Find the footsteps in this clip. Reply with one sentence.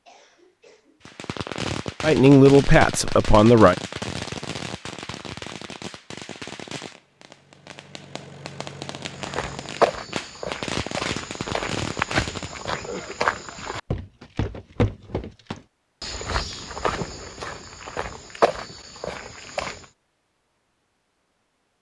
The footsteps can be heard from 9.2 to 19.9 s.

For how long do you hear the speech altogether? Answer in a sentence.
You can hear the speech for 2 seconds altogether.